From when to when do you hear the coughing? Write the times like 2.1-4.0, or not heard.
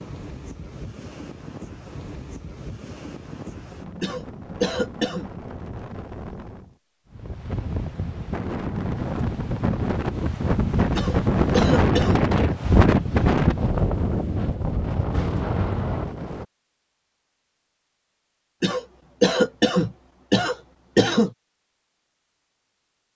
4.0-5.2, 10.9-12.2, 18.6-21.3.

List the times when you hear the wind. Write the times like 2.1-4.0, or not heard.
0.0-16.4.